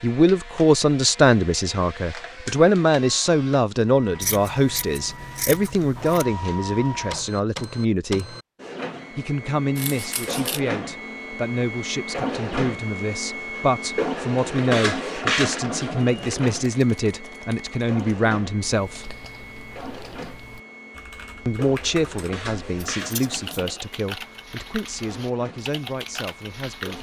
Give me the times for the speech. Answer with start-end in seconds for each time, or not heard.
0.0-8.3, 9.2-19.1, 21.4-26.9.